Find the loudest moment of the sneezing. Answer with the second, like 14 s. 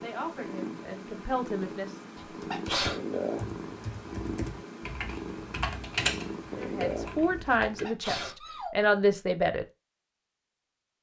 3 s.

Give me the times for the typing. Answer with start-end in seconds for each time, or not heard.
2.2-7.9.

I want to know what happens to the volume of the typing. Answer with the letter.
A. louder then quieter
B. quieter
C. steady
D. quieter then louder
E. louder
A.